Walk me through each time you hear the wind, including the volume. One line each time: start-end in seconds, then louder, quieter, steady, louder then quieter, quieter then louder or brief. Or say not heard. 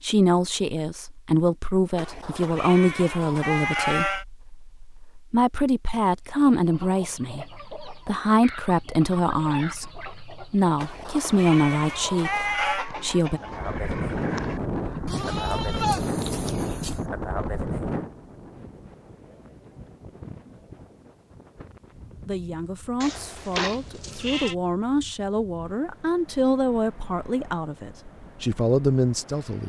13.3-29.6 quieter.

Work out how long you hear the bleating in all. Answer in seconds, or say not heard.
8 s.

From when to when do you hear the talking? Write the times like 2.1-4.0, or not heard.
0.0-13.4, 22.2-29.6.